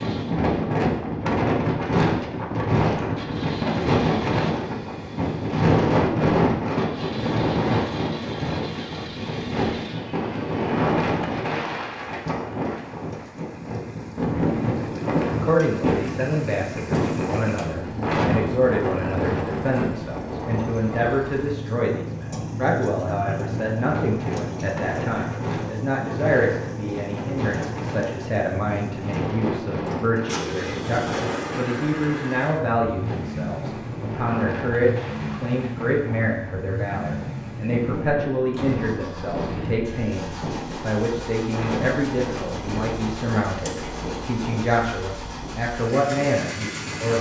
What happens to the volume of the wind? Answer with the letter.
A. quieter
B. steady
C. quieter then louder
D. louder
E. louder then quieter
A.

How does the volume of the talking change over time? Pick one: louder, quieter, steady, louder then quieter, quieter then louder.
steady.